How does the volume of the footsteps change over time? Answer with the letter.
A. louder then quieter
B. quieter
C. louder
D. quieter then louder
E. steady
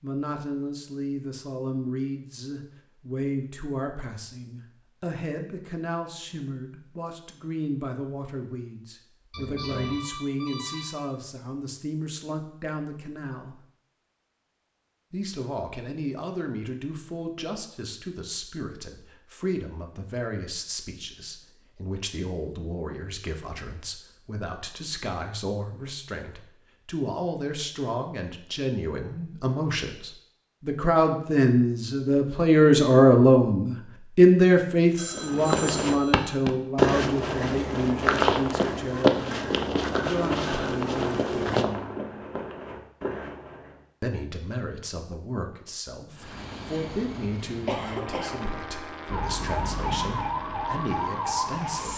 B.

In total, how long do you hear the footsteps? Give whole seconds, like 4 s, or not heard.
9 s.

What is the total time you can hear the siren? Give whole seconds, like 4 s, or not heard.
3 s.